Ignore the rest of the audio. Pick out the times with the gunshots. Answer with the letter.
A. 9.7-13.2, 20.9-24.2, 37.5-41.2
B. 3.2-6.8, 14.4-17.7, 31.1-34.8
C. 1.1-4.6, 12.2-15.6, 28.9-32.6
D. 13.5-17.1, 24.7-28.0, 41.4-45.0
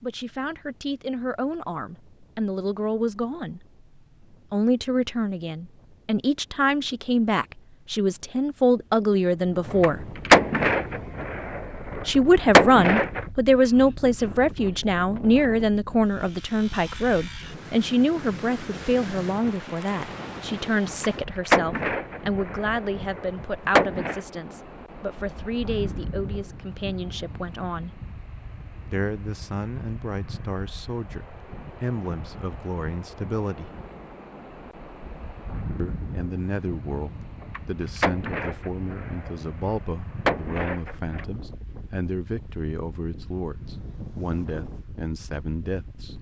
A.